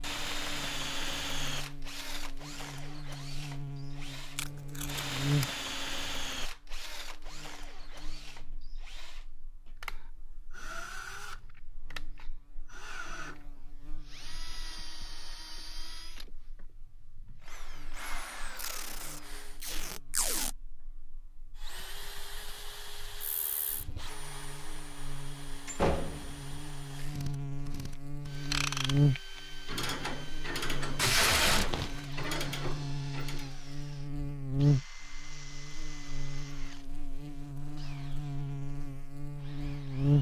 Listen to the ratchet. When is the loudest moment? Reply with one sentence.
The loudest moment of the ratchet is at 29 seconds.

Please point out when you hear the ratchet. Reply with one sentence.
You can hear the ratchet from 28.4 to 33.5 s.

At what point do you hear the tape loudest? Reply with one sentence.
The volume of the tape peaks at 31 seconds.